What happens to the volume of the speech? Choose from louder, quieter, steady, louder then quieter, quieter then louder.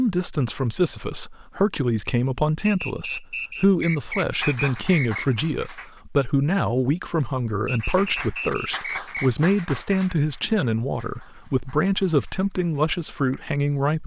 steady.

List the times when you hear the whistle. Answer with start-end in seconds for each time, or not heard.
2.6-5.3, 7.7-9.3.